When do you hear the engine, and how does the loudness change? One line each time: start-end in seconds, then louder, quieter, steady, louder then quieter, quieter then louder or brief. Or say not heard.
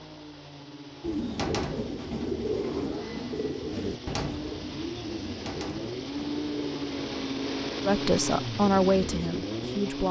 0.0-10.0 louder.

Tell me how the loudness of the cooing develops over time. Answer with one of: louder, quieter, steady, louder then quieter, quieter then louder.
quieter.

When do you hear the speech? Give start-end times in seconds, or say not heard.
7.8-10.0.